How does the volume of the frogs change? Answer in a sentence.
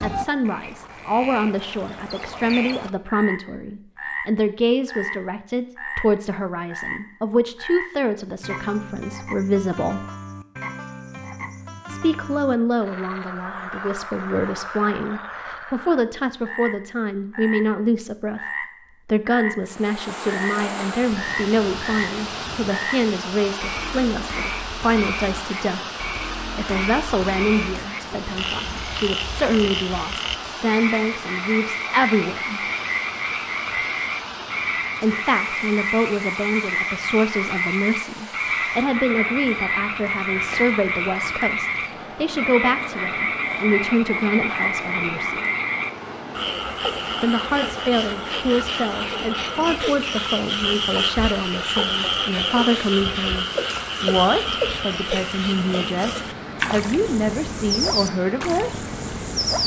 The volume of the frogs goes up.